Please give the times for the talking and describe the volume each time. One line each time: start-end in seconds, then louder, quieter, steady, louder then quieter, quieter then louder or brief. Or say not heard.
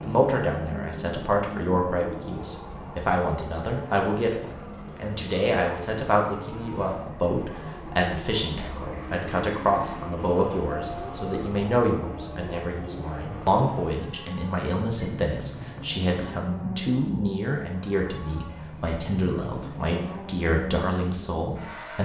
0.0-22.0 steady.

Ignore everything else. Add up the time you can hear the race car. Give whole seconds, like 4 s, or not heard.
22 s.